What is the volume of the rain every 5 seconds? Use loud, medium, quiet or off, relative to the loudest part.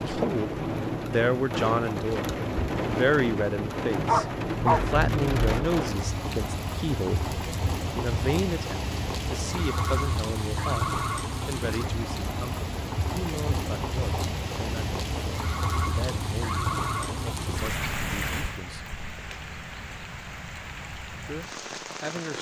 loud, loud, loud, loud, medium.